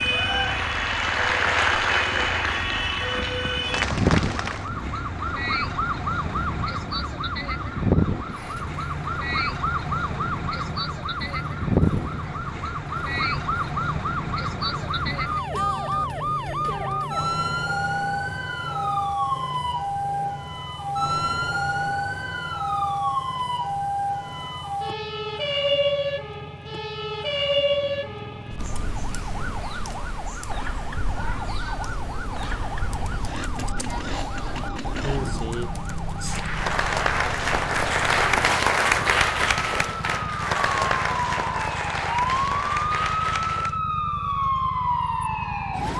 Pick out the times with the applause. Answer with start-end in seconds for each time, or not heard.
0.0-4.7, 36.2-43.8.